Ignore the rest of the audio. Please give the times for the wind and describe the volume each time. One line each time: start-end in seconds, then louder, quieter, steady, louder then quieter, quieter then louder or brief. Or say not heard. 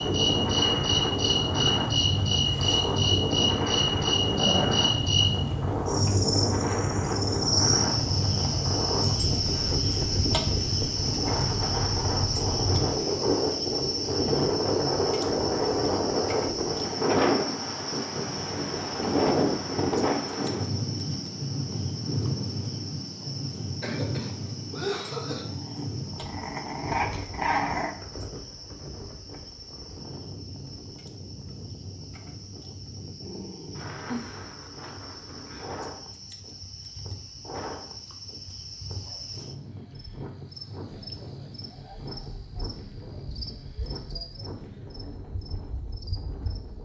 0.0-46.8 quieter.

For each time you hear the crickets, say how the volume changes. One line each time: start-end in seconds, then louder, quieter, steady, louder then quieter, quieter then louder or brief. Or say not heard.
0.0-46.8 quieter.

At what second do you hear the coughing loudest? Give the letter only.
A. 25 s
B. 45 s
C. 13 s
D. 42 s
A.